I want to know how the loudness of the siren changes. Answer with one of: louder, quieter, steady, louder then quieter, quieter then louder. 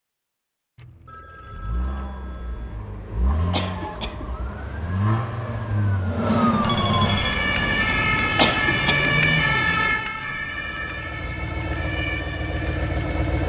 louder then quieter.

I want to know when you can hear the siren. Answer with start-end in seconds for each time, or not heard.
3.6-13.4.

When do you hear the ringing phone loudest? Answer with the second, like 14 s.
7 s.